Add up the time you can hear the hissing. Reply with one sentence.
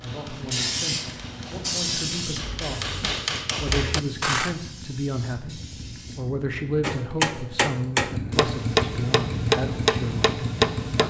You can hear the hissing for 6 seconds altogether.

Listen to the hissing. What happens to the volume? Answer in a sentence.
The loudness of the hissing goes down.